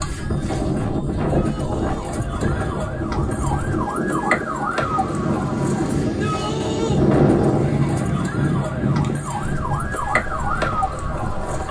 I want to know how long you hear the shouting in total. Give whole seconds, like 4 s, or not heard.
2 s.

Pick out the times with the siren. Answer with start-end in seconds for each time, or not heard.
0.0-11.6.